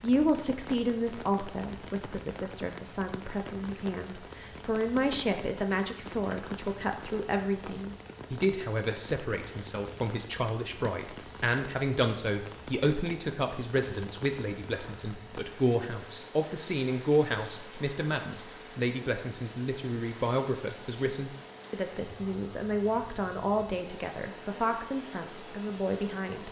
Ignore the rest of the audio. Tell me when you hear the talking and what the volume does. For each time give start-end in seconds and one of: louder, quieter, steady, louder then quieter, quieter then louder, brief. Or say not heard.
0.0-26.4 steady.